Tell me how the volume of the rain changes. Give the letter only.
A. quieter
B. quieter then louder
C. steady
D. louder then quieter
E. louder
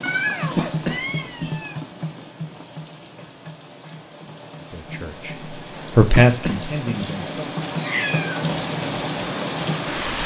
B.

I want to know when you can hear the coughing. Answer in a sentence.
The coughing can be heard from 0.6 to 1.6 s and from 6.2 to 7.0 s.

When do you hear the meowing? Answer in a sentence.
The meowing can be heard from 0.0 to 1.8 s and from 7.7 to 8.4 s.